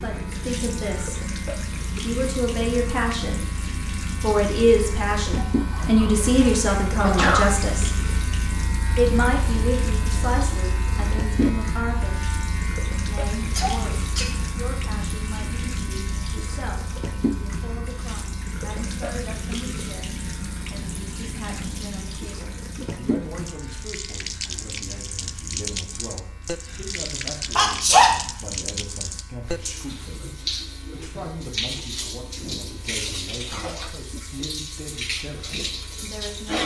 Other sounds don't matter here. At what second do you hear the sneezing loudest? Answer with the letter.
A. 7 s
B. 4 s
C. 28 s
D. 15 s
C.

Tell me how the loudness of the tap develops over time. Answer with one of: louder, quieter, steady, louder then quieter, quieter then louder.
steady.